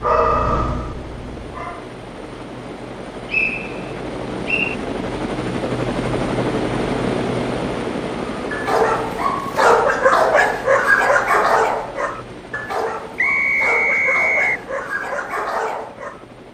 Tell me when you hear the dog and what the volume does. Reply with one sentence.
The dog can be heard briefly from 0.0 to 1.9 s; and from 8.5 to 16.2 s, getting quieter.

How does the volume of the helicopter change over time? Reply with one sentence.
The volume of the helicopter goes up, then down.